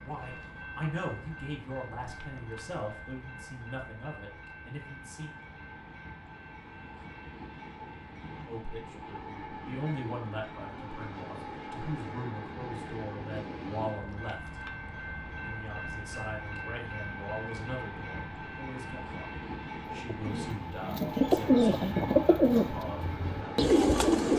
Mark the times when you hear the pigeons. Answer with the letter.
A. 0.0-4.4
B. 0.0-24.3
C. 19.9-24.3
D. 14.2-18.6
C.